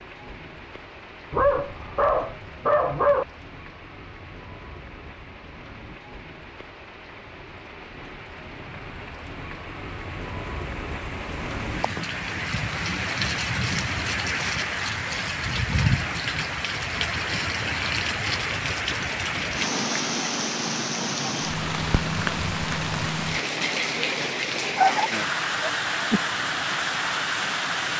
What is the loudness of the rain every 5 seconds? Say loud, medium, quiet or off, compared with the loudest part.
quiet, quiet, loud, loud, loud, loud.